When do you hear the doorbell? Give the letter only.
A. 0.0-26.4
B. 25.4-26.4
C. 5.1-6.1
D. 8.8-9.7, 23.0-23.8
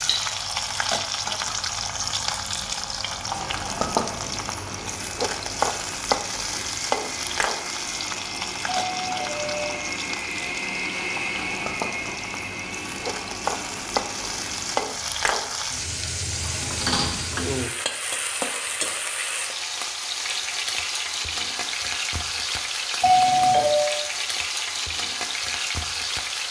D.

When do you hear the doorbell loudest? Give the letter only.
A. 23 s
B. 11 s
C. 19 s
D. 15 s
A.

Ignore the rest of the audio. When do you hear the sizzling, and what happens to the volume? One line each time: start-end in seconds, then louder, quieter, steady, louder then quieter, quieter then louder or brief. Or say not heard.
0.0-26.4 steady.